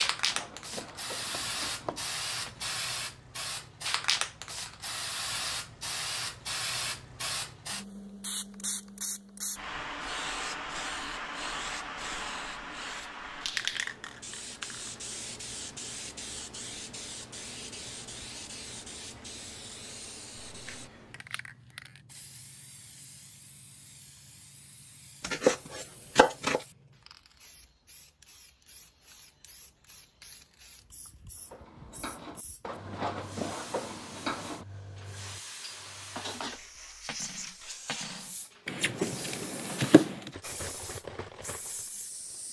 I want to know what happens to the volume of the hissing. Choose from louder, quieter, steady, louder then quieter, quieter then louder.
quieter then louder.